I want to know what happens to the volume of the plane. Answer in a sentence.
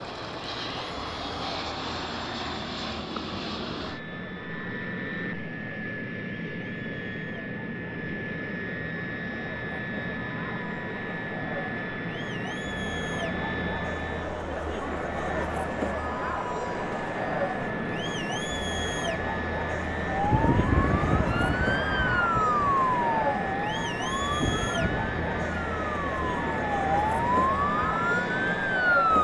The volume of the plane stays about the same.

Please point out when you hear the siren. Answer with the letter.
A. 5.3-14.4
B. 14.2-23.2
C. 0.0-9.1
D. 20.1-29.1
D.